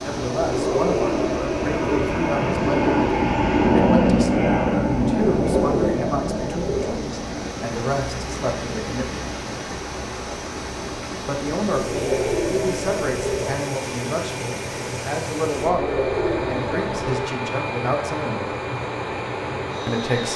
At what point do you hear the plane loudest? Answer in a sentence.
The loudest moment of the plane is at 4 seconds.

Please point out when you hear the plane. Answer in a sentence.
The plane can be heard from 0.0 to 20.3 s.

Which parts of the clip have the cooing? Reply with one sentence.
The cooing can be heard from 0.4 to 2.1 s, from 5.3 to 7.0 s, from 11.7 to 13.6 s and from 15.6 to 17.3 s.